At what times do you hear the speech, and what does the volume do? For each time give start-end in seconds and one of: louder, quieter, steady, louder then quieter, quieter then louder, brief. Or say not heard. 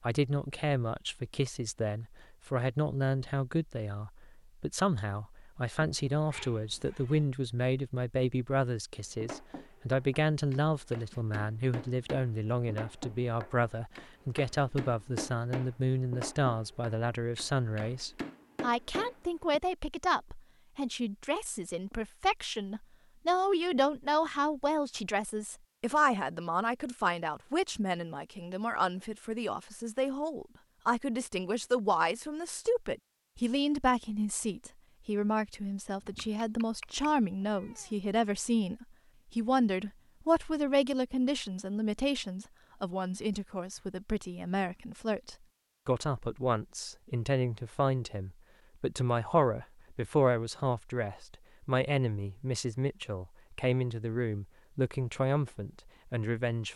0.0-56.7 steady.